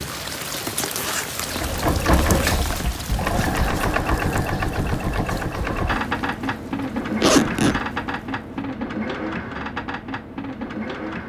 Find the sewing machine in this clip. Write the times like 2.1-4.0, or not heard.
1.4-11.2.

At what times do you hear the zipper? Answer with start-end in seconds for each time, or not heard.
0.6-1.7, 7.2-7.8.